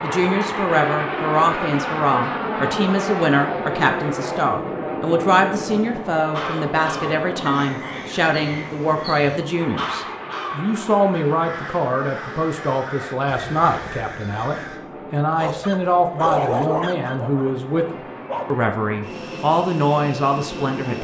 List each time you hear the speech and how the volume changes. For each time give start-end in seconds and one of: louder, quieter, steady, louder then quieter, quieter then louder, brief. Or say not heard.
0.0-20.9 steady.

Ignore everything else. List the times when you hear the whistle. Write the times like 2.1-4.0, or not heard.
not heard.